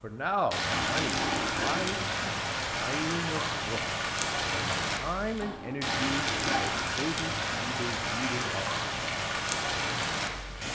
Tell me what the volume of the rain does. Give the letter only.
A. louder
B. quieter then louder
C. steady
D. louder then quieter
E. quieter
C.